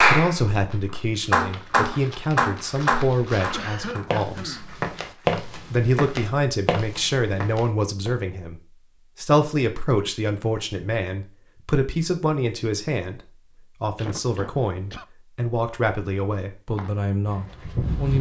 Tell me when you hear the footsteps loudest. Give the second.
5 s.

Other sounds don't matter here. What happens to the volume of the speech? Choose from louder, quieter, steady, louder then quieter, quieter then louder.
steady.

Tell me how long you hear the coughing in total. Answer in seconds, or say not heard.
2 s.